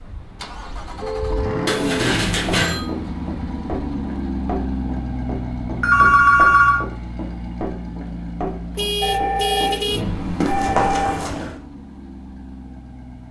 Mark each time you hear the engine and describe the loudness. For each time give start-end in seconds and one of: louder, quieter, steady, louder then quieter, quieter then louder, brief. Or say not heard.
0.0-13.2 quieter.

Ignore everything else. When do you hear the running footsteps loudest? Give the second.
11 s.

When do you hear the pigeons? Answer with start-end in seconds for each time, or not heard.
not heard.